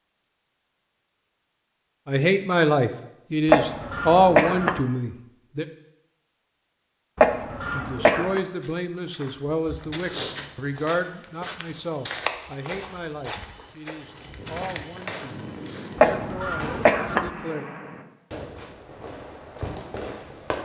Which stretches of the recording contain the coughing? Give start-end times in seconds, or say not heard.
3.5-4.8, 7.2-8.4, 15.9-17.3.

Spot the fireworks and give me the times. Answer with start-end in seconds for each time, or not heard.
14.1-20.6.